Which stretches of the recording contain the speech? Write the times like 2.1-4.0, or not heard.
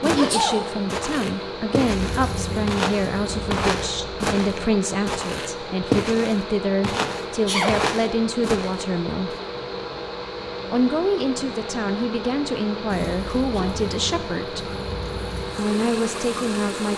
0.0-9.3, 10.7-14.7, 15.6-16.9.